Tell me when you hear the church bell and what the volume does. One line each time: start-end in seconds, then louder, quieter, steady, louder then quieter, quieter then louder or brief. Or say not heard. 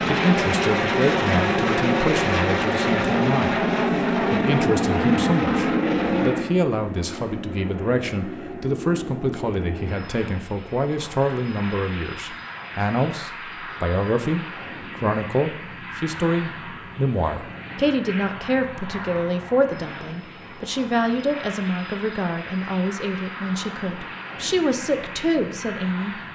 not heard.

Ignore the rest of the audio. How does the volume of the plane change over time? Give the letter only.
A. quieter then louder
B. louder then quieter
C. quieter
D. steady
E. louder
C.